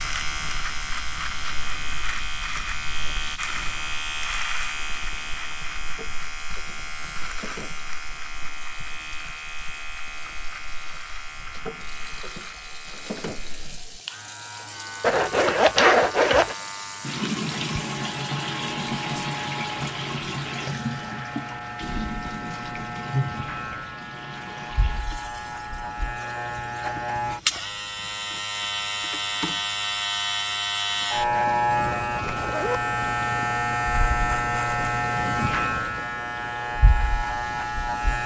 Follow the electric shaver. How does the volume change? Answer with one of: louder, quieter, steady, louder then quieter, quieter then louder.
quieter then louder.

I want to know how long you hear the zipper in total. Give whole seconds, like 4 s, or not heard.
2 s.